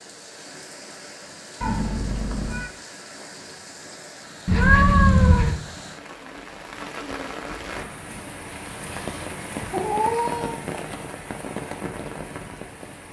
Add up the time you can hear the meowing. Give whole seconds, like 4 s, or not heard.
3 s.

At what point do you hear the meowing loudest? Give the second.
5 s.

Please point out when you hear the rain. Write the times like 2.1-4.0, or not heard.
0.0-13.0.